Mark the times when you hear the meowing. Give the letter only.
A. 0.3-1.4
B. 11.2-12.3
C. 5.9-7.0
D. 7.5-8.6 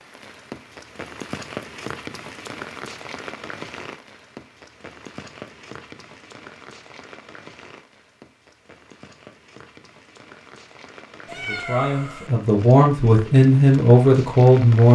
B.